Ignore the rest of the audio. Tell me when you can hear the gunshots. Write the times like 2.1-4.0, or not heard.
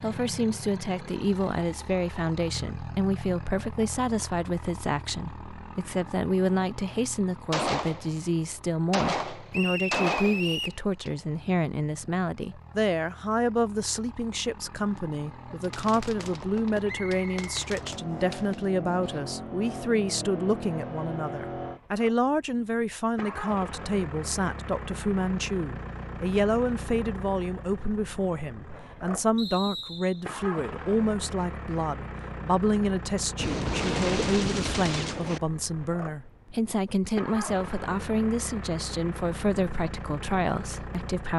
7.5-11.1, 15.6-19.2, 33.4-35.4.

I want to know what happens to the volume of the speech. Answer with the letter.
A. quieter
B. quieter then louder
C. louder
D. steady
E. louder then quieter
D.